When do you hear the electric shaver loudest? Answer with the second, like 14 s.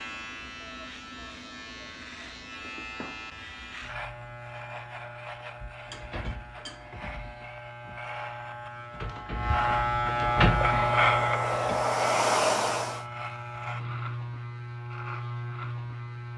11 s.